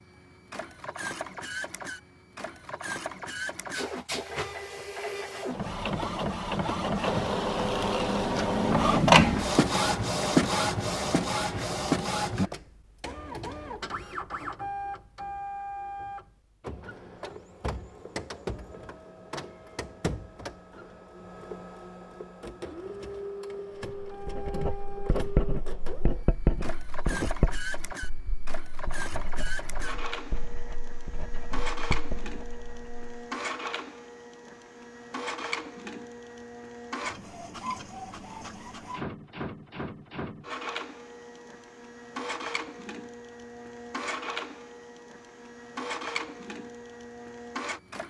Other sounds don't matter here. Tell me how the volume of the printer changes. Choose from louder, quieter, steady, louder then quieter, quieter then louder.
quieter.